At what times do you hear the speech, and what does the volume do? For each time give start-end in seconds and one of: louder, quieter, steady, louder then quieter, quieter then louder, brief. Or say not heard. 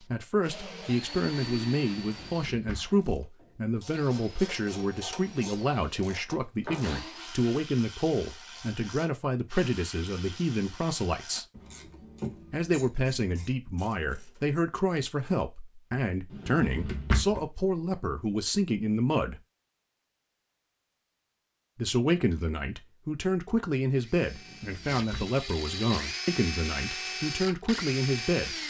0.0-11.4 steady
12.5-19.4 steady
21.8-28.6 steady.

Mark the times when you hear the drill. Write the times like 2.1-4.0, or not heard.
0.0-7.3, 23.9-28.6.